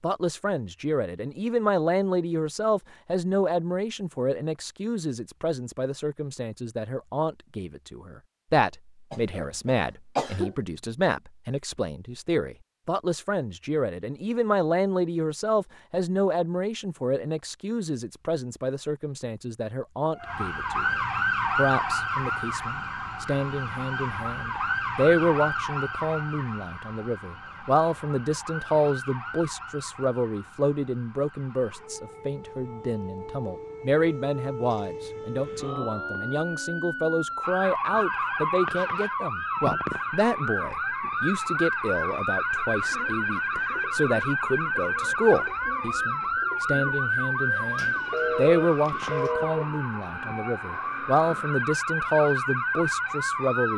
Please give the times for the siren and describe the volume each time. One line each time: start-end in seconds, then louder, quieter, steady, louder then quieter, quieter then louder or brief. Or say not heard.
20.1-53.7 quieter then louder.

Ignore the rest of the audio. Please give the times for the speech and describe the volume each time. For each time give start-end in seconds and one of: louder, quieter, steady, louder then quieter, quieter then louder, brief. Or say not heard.
0.0-53.7 steady.